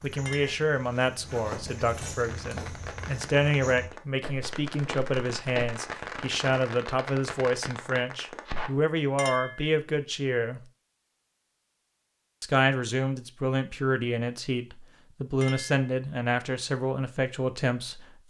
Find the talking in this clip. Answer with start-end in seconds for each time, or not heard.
0.0-10.6, 12.4-18.2.